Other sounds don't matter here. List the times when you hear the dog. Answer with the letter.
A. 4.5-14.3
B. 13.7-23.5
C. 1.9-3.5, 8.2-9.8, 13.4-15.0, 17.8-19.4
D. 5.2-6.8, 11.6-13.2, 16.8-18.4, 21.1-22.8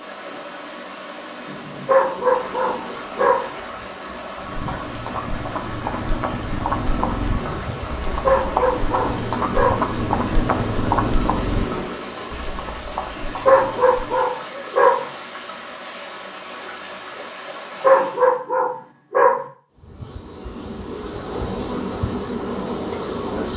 C.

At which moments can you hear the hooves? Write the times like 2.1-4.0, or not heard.
4.5-14.3.